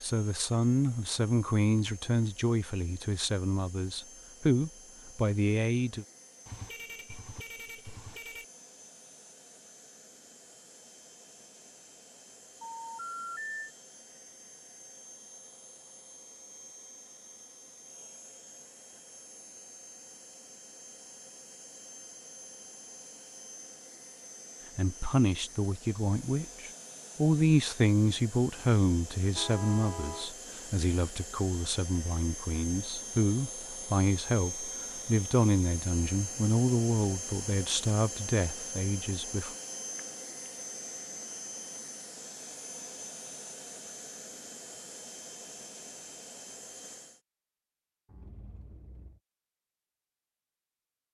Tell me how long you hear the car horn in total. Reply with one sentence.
The car horn can be heard for 4 seconds in total.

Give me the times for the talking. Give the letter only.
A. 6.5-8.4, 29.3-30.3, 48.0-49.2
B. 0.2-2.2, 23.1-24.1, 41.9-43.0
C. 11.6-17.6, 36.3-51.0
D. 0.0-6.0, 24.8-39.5
D.